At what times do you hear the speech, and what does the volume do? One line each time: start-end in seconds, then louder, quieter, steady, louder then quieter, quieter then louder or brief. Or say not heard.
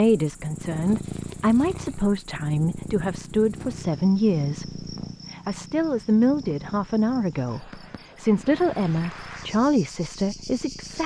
0.0-11.0 steady.